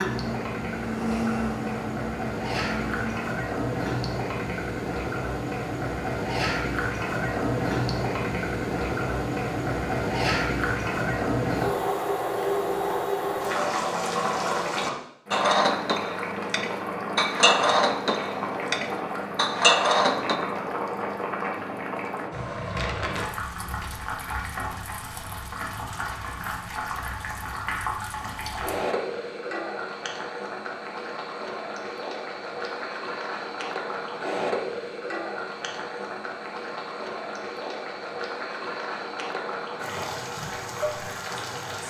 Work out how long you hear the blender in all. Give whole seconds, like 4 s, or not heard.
3 s.